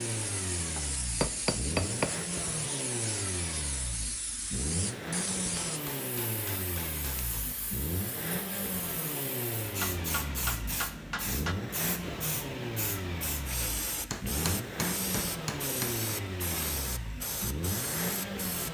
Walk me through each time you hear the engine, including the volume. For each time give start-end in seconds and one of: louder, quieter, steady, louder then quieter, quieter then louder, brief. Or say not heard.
0.0-18.6 steady.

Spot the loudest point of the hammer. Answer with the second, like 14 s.
2 s.